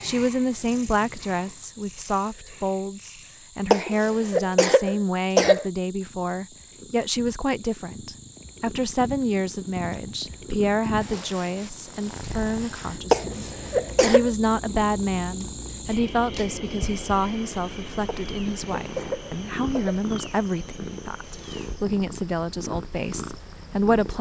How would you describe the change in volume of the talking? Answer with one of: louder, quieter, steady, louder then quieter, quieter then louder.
steady.